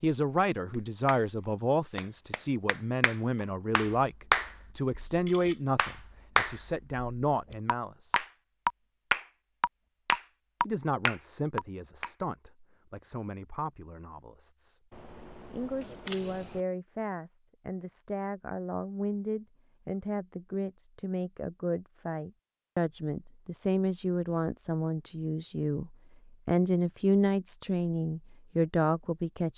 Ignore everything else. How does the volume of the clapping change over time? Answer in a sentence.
The volume of the clapping goes up.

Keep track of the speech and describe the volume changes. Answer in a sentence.
The volume of the speech goes down, then up.